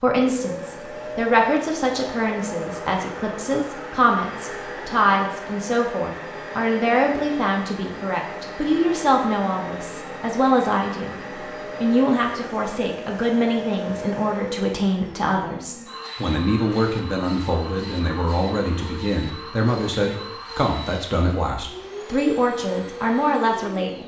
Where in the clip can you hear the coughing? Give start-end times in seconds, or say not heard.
not heard.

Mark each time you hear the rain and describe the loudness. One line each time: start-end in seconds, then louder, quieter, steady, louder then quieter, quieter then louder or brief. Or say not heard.
not heard.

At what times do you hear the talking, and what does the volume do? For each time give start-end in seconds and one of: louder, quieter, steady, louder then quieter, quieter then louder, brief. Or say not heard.
0.0-24.0 steady.